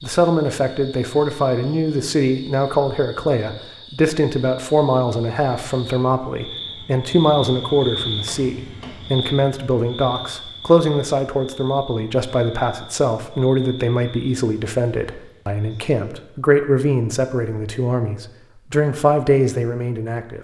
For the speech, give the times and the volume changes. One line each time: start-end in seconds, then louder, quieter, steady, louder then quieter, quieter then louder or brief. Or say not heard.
0.0-20.3 steady.